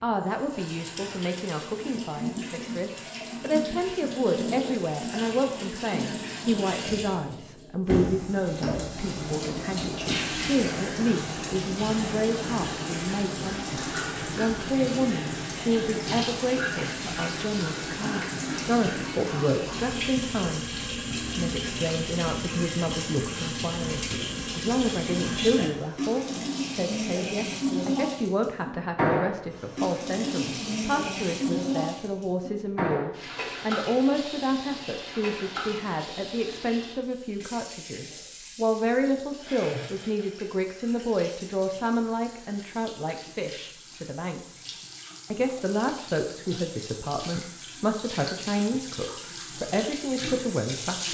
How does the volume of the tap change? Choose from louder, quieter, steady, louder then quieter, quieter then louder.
quieter.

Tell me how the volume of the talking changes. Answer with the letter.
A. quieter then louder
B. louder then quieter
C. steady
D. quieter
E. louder
C.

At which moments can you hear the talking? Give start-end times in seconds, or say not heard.
0.0-44.7, 45.3-51.0.